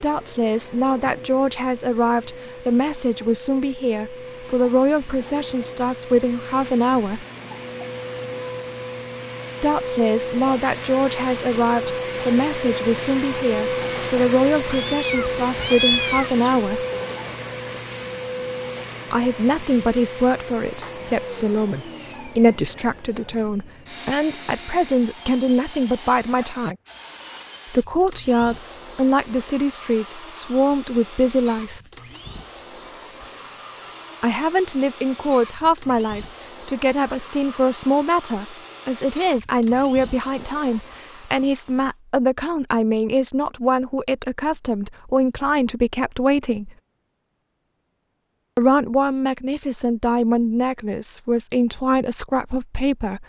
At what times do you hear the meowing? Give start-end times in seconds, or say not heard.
14.7-16.5.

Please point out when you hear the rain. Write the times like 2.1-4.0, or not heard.
not heard.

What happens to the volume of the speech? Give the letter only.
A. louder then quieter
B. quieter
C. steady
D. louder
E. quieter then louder
C.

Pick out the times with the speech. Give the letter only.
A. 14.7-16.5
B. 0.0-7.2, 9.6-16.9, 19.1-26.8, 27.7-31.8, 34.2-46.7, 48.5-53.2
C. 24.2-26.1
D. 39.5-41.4
B.